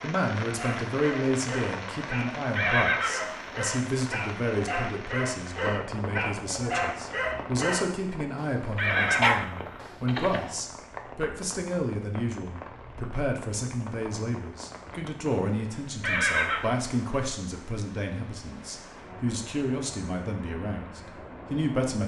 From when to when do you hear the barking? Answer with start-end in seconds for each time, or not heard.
0.5-10.6.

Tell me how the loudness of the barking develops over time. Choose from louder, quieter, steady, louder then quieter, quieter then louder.
louder.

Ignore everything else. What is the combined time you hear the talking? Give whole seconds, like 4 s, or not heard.
22 s.